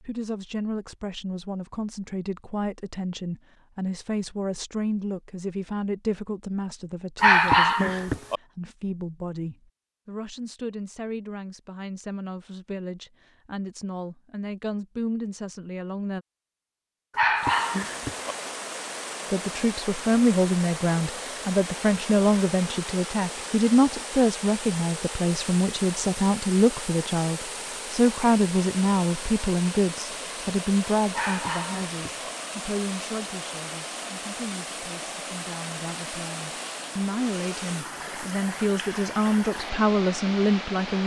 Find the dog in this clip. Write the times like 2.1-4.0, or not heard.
7.2-8.4, 17.1-18.4, 31.1-32.3.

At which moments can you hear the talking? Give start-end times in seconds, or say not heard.
0.0-16.2, 19.3-41.0.